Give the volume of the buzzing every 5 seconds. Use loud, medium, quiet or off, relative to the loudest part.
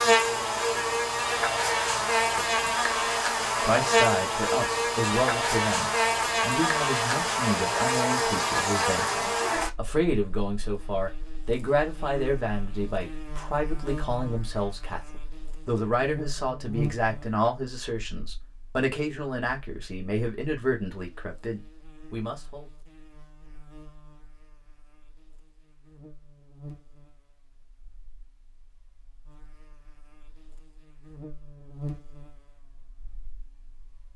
loud, loud, quiet, quiet, quiet, quiet, quiet.